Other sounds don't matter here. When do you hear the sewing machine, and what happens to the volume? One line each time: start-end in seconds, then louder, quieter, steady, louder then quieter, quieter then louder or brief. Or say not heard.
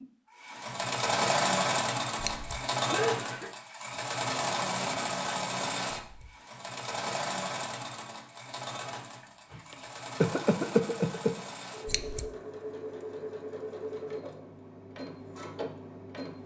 0.0-16.4 quieter.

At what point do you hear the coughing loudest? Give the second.
11 s.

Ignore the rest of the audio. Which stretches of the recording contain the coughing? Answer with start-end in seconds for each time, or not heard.
2.8-3.5, 9.5-11.3.